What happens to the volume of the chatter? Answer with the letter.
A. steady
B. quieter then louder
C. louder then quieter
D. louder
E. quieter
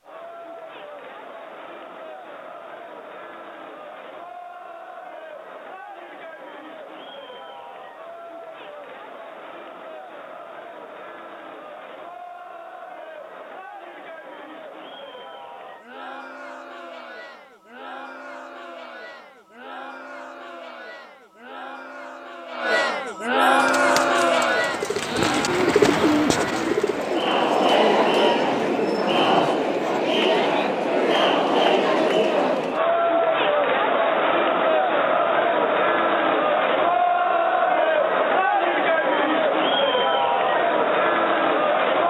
D.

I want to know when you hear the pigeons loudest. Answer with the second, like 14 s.
26 s.